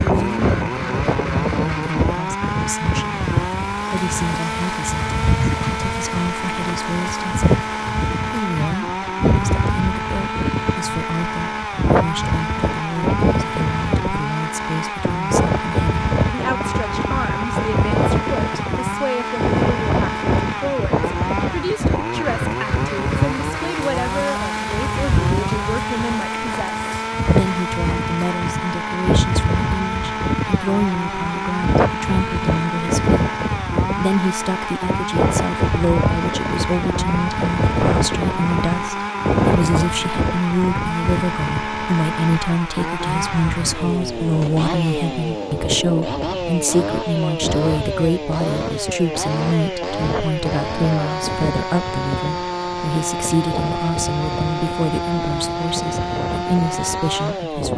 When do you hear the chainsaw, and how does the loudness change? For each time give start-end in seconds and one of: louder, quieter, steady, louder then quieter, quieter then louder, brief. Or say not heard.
0.0-57.7 steady.